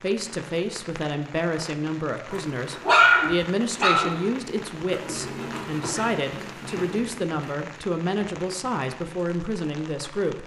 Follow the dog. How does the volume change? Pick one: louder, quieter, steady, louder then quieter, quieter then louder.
quieter.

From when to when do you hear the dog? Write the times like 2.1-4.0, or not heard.
2.3-7.7.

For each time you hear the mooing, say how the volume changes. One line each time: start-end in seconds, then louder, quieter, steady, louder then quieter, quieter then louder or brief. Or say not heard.
not heard.